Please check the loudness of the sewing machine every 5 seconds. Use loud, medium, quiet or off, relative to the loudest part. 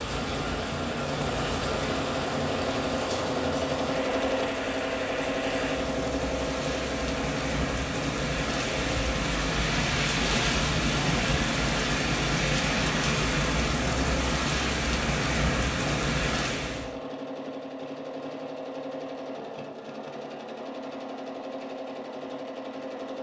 loud, loud, medium, medium, medium.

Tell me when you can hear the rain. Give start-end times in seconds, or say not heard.
0.0-16.9.